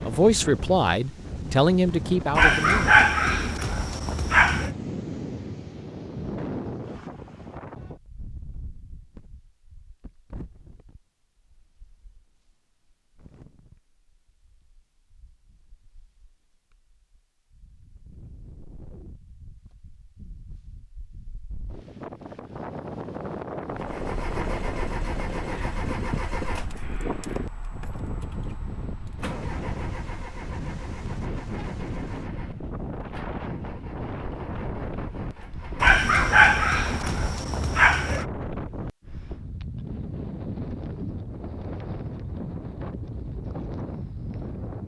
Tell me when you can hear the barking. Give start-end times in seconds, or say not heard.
2.4-4.7, 35.8-38.2.